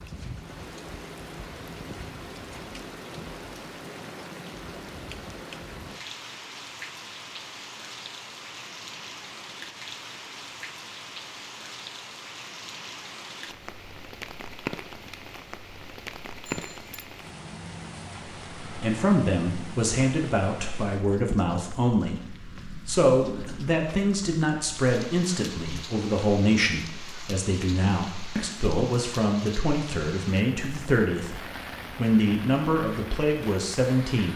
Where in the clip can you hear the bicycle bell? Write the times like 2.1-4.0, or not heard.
16.4-17.1.